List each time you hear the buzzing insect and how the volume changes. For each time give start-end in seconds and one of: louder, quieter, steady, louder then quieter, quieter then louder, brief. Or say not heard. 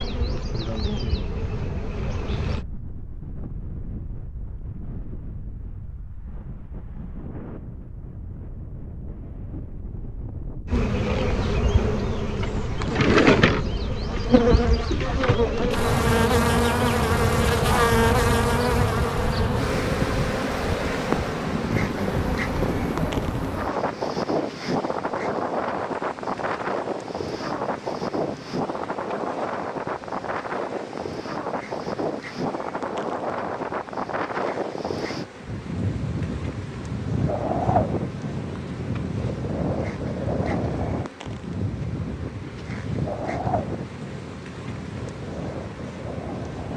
0.0-2.6 brief
10.7-46.7 quieter.